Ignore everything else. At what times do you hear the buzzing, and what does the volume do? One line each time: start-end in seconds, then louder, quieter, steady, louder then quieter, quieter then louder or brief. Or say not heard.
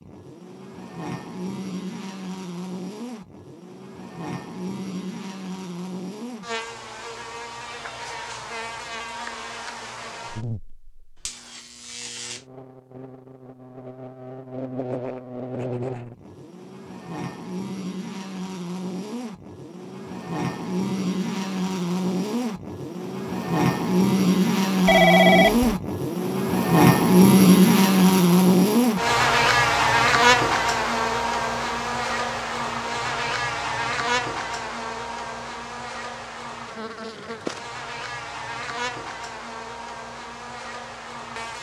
0.0-41.5 louder then quieter.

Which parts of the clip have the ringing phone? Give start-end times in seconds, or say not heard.
24.9-25.8.